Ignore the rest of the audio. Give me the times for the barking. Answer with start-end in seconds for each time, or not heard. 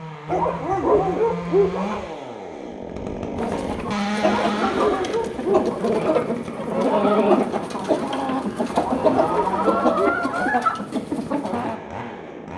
0.2-2.0, 4.2-6.0, 8.7-10.4.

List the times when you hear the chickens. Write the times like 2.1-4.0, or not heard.
3.4-11.8.